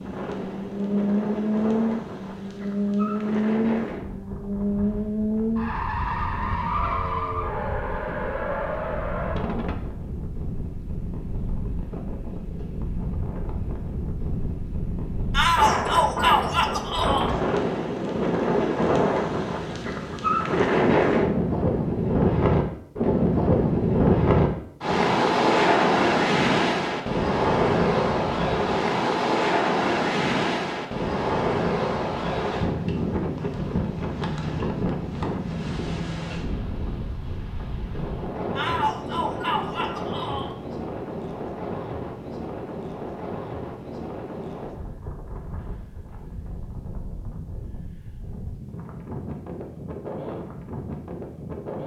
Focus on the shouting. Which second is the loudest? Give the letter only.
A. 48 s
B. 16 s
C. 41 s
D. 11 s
B.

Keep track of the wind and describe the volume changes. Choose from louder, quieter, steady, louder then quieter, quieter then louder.
louder then quieter.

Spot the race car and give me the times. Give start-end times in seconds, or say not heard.
0.0-9.8.